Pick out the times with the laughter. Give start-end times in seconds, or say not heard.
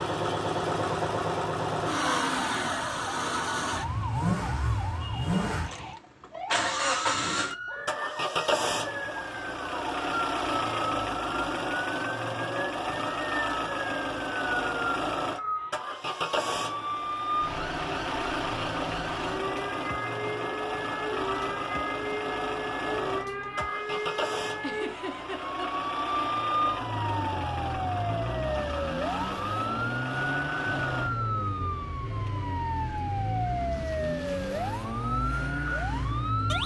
24.6-25.6.